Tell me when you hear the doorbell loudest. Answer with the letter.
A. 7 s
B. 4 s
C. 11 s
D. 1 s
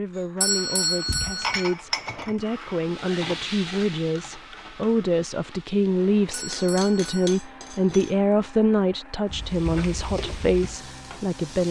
D.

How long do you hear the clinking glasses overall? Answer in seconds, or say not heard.
3 s.